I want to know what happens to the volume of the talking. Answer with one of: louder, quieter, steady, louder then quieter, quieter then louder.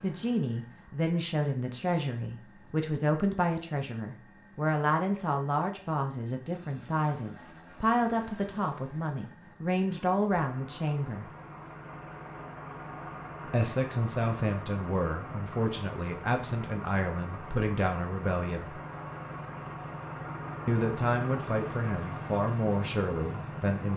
steady.